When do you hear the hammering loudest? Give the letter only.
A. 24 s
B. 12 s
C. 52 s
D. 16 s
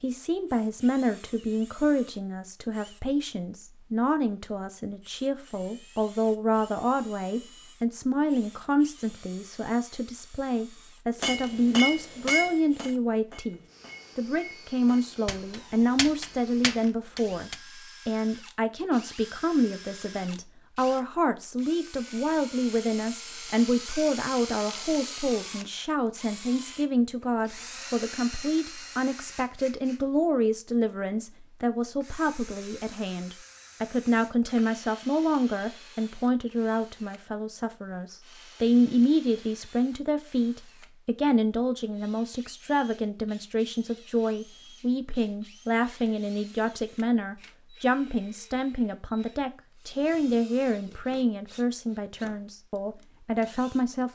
B.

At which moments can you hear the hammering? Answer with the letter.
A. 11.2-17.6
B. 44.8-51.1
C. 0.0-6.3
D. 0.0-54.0
A.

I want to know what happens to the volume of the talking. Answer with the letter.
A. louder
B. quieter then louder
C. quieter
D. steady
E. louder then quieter
D.